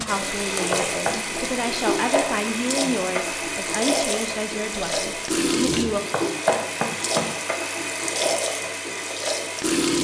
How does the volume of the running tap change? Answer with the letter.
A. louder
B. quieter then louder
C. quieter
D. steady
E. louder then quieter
D.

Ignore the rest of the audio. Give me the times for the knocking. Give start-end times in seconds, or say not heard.
0.7-1.2, 6.1-7.3.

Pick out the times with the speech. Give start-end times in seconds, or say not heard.
0.0-6.0.